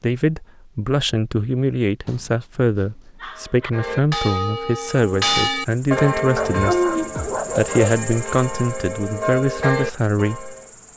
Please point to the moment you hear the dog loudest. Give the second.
7 s.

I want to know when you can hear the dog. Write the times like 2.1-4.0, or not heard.
2.0-3.7, 6.3-8.0.